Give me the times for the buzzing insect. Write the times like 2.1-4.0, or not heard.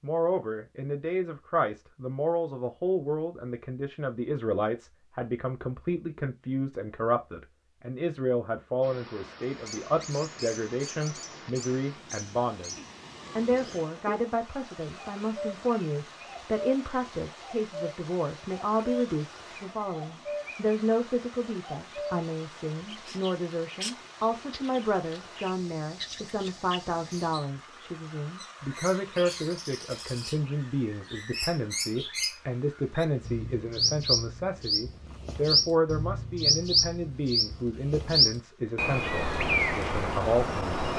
not heard.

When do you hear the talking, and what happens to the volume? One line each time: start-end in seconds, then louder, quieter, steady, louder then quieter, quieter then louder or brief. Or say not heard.
0.0-40.6 steady.